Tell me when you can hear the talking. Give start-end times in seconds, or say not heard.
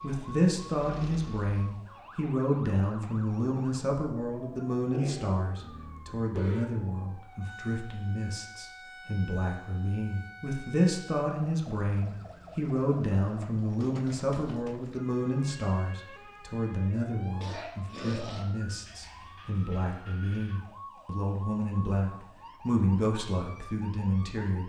0.0-24.6.